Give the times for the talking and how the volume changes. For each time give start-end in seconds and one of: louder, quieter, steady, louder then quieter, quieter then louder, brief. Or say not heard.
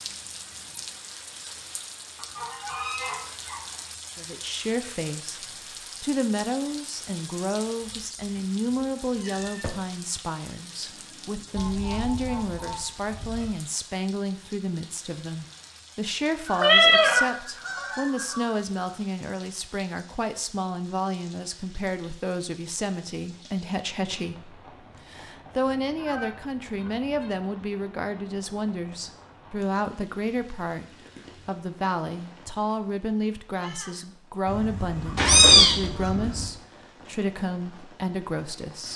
4.2-38.9 steady.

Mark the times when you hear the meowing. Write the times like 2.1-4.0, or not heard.
7.8-9.7, 16.6-17.2, 35.1-35.8.